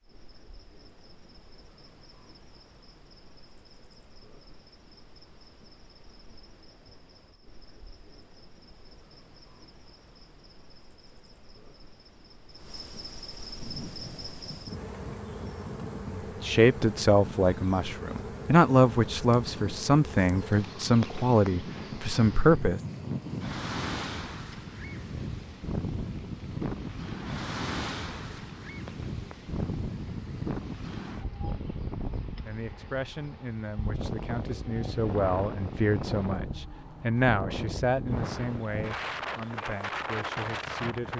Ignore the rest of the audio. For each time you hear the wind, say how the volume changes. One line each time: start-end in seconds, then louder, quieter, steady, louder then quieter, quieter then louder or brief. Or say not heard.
13.5-41.1 louder.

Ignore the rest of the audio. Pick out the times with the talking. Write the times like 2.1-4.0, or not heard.
16.1-22.8, 32.4-41.1.